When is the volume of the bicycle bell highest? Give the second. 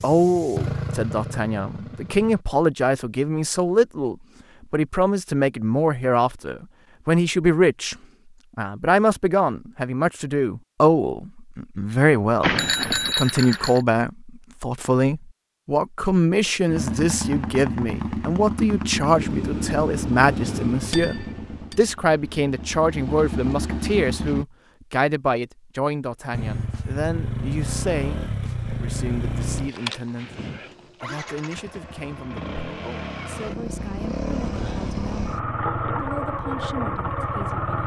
13 s.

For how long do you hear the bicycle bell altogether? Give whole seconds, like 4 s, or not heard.
2 s.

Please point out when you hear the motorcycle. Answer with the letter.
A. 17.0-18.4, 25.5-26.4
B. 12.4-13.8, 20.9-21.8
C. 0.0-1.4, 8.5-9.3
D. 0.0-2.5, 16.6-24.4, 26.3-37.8
D.